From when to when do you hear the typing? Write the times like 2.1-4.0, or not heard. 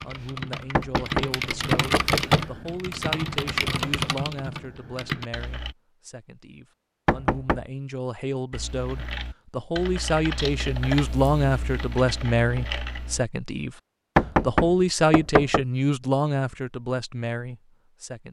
0.0-5.8, 8.5-13.2.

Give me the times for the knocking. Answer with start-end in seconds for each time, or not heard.
0.8-2.5, 7.0-7.7, 14.2-15.7.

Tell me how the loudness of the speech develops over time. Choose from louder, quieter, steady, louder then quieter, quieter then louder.
louder.